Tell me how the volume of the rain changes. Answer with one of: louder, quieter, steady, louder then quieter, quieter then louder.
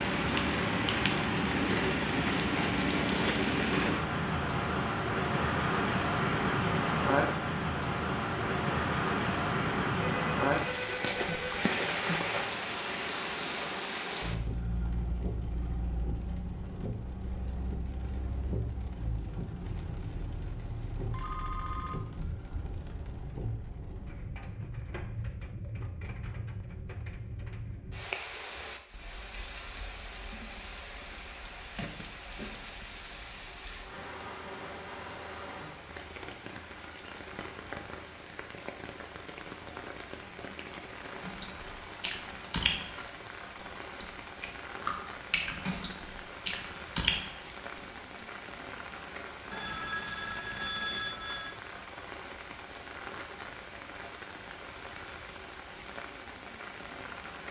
quieter.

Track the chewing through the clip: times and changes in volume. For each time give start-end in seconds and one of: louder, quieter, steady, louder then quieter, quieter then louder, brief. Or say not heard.
41.2-47.9 quieter then louder.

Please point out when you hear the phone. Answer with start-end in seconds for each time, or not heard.
10.1-11.7, 21.1-22.0, 49.5-51.5.